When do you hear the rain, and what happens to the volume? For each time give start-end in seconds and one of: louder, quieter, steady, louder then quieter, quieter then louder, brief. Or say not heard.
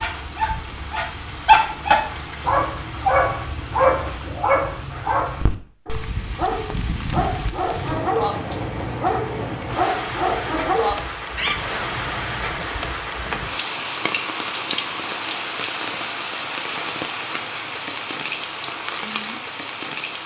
0.0-20.2 louder.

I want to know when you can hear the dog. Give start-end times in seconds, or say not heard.
0.0-11.6.